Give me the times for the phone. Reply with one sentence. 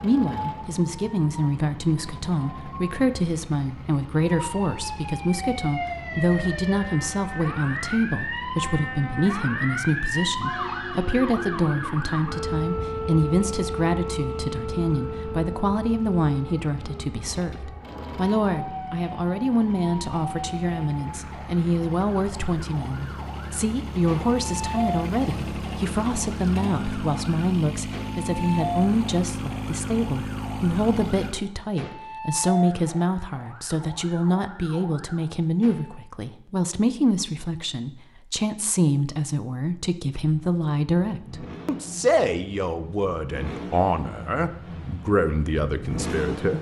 The phone can't be heard in this clip.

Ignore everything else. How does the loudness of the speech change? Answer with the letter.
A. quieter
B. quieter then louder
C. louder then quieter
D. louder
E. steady
E.